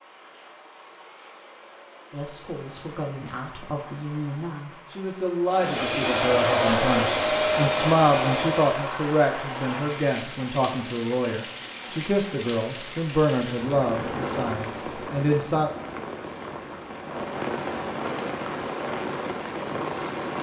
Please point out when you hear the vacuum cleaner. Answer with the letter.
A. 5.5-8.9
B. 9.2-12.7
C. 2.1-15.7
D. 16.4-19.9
A.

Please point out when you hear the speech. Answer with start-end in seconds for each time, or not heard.
2.1-15.7.